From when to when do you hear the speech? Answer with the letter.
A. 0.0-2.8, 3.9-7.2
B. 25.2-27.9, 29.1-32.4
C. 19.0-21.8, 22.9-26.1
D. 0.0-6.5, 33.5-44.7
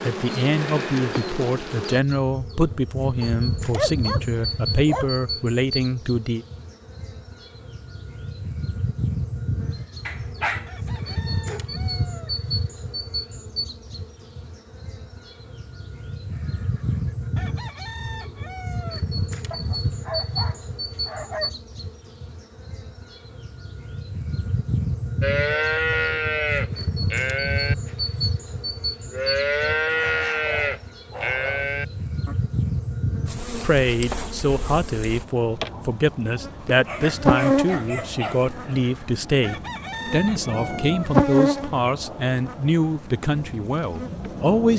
D.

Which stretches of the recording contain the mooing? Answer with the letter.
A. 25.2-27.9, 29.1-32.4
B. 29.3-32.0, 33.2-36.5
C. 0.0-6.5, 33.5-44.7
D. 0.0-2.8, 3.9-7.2
A.